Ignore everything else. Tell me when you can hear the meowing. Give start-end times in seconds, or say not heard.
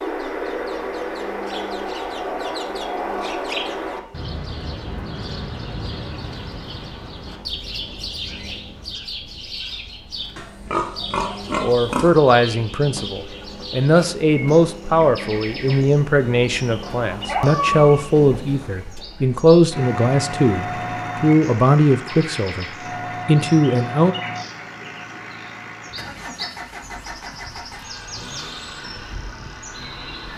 16.9-18.1.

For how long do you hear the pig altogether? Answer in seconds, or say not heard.
2 s.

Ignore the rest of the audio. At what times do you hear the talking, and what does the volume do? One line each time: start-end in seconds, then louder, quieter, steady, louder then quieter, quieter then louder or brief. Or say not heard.
11.6-24.1 steady.